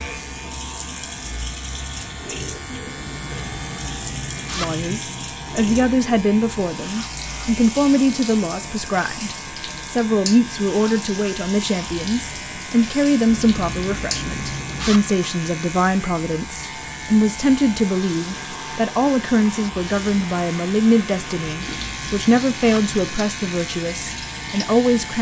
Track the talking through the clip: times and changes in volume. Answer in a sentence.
The talking can be heard from 4.5 to 25.1 s, at a steady volume.